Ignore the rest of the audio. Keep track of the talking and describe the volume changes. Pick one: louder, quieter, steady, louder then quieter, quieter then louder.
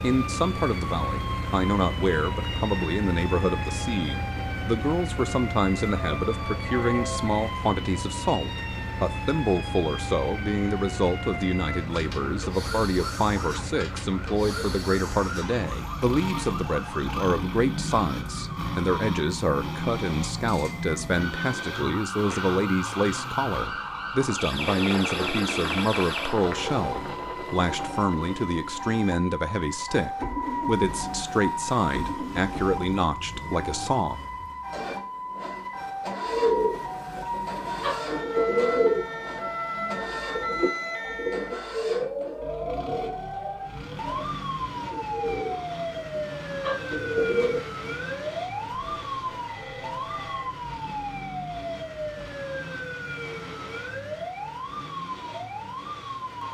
steady.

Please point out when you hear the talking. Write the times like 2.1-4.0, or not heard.
0.0-34.2.